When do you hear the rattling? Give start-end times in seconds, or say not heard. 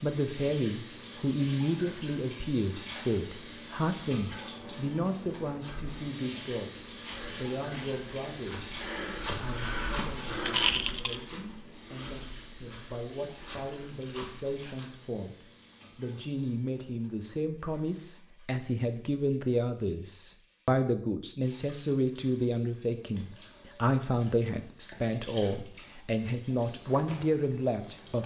10.4-11.2.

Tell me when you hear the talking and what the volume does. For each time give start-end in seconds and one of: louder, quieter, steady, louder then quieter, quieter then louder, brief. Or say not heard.
0.0-28.2 quieter then louder.